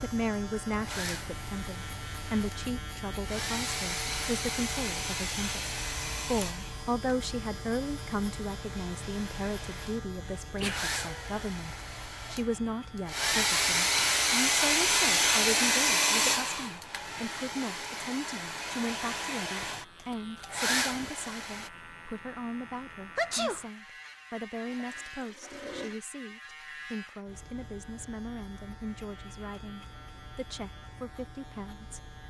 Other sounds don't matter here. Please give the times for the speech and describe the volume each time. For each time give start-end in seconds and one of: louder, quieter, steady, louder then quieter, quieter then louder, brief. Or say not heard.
0.0-32.0 quieter.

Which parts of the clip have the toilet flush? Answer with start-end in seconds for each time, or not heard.
24.5-26.0.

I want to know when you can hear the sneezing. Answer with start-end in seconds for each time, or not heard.
10.4-11.4, 23.1-23.6.